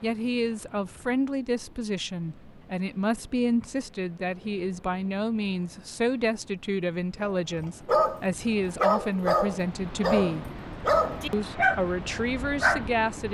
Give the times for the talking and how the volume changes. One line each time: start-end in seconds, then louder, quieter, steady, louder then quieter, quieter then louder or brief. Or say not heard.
0.0-10.6 steady
11.3-13.2 brief.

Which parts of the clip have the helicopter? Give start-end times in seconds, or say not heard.
not heard.